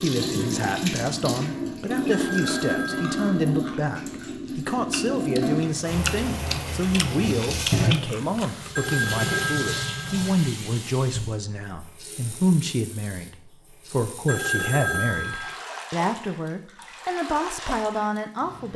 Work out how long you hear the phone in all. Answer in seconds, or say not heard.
4 s.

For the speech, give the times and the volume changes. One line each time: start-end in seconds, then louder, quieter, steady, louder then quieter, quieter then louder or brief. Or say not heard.
0.0-18.7 steady.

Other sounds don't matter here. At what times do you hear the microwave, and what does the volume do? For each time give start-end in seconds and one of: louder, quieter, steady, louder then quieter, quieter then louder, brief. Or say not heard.
not heard.